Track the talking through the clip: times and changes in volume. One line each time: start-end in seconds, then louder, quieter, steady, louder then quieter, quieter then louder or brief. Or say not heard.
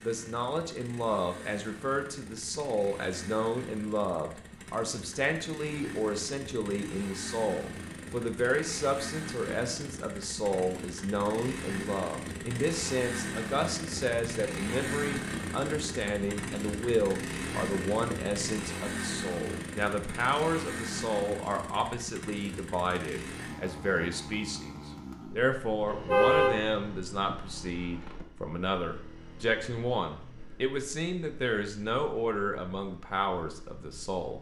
0.0-34.3 steady.